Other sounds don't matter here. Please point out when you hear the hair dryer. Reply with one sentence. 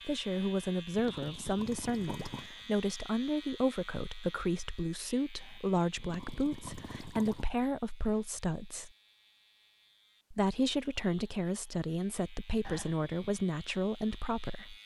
You can't hear the hair dryer here.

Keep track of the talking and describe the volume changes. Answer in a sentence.
The volume of the talking stays about the same.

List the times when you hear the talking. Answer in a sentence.
You can hear the talking from 0.1 to 8.9 s and from 10.3 to 14.8 s.